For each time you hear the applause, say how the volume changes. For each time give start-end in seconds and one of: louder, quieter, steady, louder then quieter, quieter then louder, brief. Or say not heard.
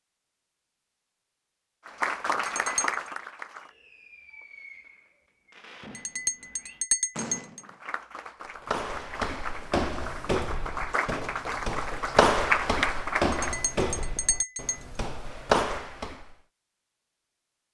1.9-3.7 brief
7.6-13.6 louder.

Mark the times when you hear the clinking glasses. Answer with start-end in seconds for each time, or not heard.
2.5-3.0, 6.0-7.6, 13.3-14.8.